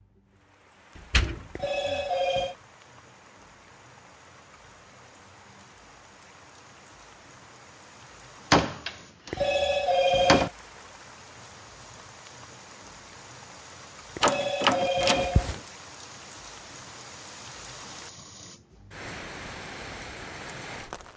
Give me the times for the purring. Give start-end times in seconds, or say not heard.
not heard.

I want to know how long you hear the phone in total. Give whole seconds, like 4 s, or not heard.
4 s.